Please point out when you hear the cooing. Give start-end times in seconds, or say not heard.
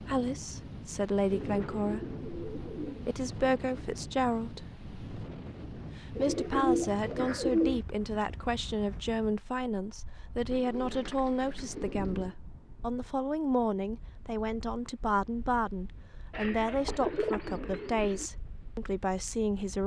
1.3-3.1, 6.1-7.8, 10.5-12.3, 16.3-18.3.